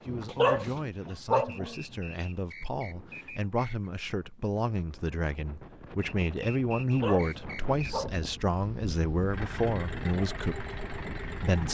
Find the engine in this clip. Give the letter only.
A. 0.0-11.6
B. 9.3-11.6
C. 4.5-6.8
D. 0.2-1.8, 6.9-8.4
B.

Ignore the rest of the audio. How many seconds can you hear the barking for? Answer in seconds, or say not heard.
3 s.